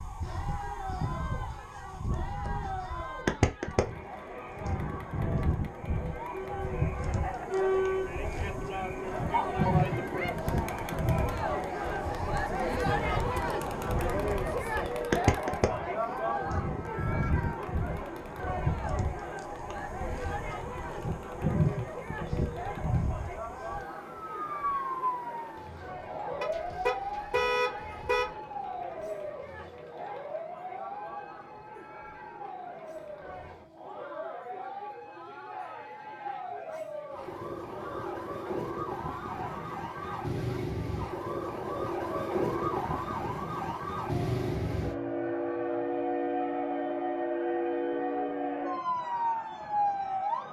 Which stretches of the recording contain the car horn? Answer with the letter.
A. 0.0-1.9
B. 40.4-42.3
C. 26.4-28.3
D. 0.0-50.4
C.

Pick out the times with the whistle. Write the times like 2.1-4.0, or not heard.
not heard.